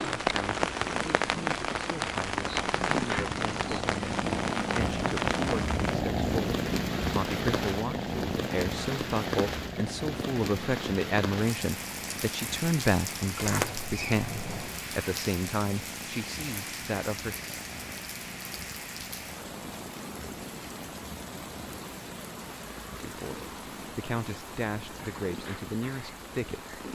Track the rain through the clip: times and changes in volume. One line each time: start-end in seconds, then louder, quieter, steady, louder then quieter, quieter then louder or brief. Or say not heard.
0.0-26.9 quieter.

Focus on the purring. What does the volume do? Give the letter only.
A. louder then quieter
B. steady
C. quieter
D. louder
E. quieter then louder
C.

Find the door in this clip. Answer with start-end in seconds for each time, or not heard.
13.3-14.8.